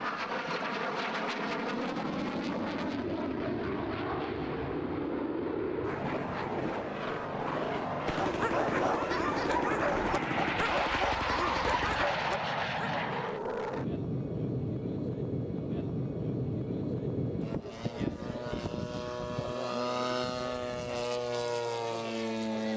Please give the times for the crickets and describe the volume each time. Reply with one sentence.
The crickets can't be heard in this clip.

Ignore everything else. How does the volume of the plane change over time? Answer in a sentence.
The volume of the plane stays about the same.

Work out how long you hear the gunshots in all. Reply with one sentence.
The gunshots can be heard for 4 seconds in total.